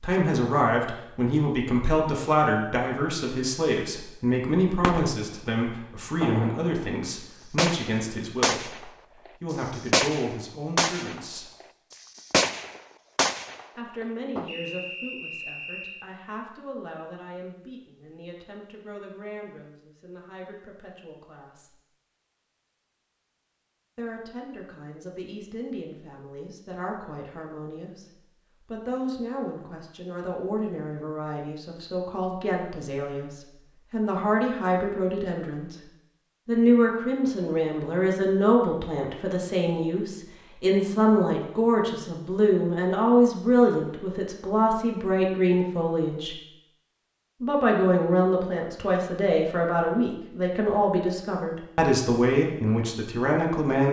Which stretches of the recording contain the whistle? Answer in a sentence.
You can hear the whistle from 14.4 to 16.1 s.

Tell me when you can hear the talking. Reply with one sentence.
The talking can be heard from 0.0 to 11.5 s, from 13.8 to 21.8 s, from 23.9 to 35.8 s, from 36.5 to 46.4 s and from 47.4 to 53.8 s.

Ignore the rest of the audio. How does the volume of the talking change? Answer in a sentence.
The loudness of the talking goes down, then up.